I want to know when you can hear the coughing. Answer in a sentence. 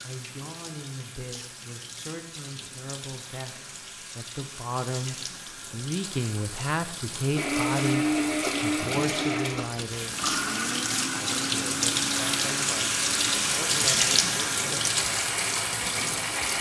The coughing can't be heard in this clip.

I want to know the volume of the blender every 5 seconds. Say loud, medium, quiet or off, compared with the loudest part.
off, loud, medium, medium.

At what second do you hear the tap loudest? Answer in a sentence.
The loudest moment of the tap is at 14 seconds.